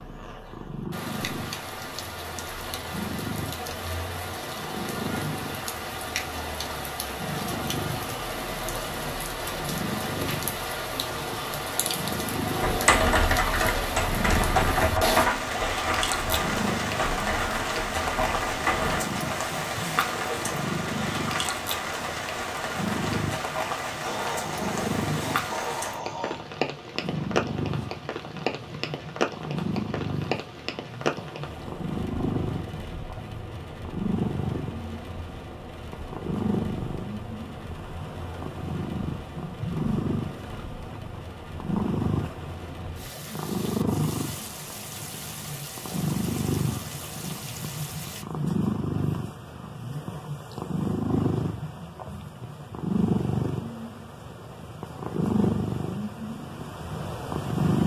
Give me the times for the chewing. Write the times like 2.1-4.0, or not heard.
not heard.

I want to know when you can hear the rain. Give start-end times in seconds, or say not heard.
0.0-48.2.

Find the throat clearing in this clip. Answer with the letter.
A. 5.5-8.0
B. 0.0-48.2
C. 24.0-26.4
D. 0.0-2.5
C.